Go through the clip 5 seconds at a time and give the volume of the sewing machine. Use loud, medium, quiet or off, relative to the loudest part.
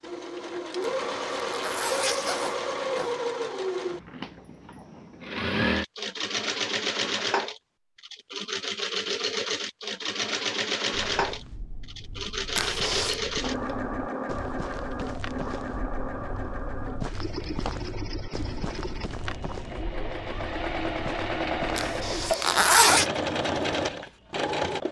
loud, loud, loud, medium, loud.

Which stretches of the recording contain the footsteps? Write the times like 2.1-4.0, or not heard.
10.9-22.4.